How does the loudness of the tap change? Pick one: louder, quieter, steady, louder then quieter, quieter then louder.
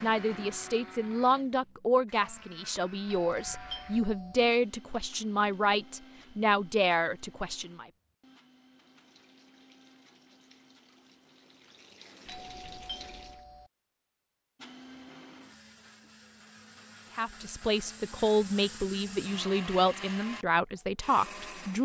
louder.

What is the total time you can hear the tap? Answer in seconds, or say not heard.
5 s.